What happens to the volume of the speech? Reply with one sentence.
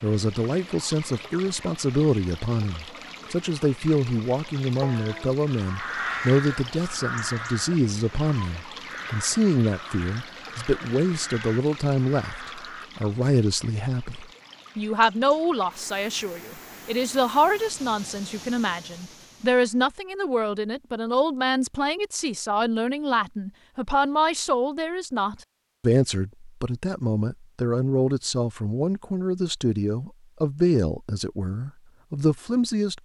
The volume of the speech stays about the same.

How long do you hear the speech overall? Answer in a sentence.
The speech can be heard for 33 seconds in total.